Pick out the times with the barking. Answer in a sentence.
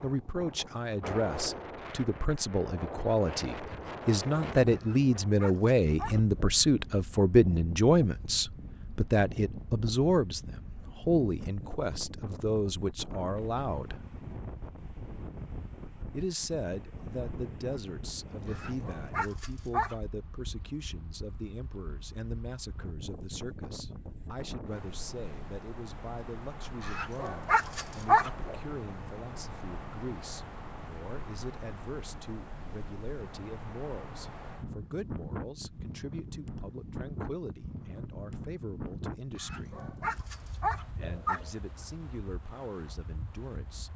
You can hear the barking from 4.8 to 6.5 s, from 18.5 to 19.9 s, from 26.9 to 28.6 s and from 39.4 to 41.5 s.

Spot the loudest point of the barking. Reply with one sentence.
The loudest moment of the barking is at 28 seconds.